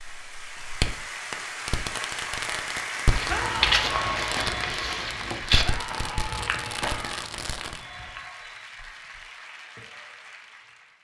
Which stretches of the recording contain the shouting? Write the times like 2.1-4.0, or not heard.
3.2-4.0, 5.6-7.3.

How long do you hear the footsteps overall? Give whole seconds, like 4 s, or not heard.
5 s.